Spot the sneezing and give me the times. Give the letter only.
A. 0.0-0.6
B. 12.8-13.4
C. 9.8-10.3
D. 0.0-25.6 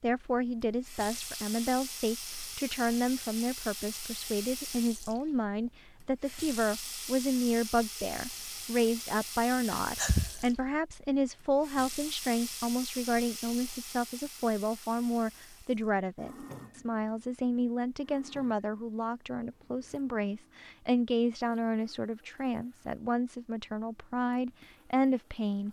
C.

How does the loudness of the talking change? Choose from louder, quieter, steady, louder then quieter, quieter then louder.
steady.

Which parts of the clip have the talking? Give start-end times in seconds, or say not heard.
0.0-25.6.